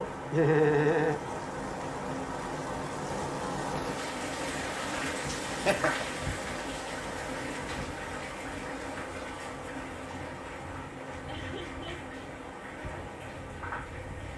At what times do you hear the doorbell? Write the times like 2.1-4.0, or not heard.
not heard.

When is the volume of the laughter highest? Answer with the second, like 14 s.
1 s.